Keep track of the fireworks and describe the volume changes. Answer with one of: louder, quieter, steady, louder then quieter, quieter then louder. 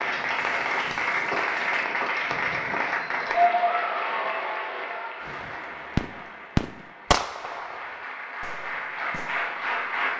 louder then quieter.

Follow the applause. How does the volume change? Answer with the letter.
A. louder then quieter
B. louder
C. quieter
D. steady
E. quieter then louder
E.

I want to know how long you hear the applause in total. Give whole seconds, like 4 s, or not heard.
10 s.